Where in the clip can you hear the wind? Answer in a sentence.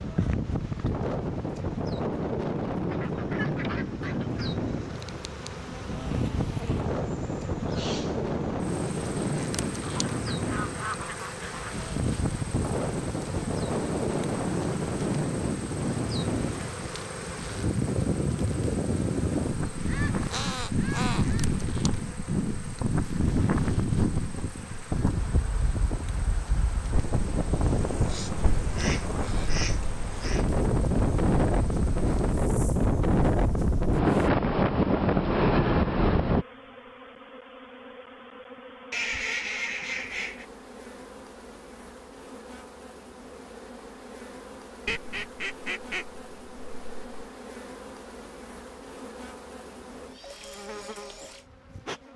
The wind can be heard from 0.0 to 36.5 s.